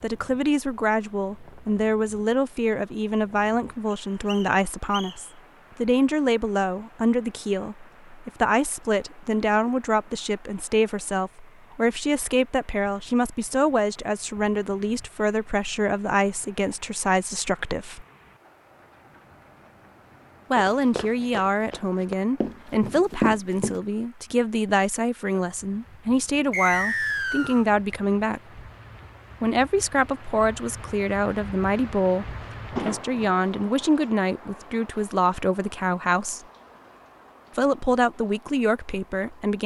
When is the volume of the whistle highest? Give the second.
27 s.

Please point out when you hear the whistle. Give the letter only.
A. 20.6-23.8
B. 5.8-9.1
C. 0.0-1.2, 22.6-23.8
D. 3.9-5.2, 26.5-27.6
D.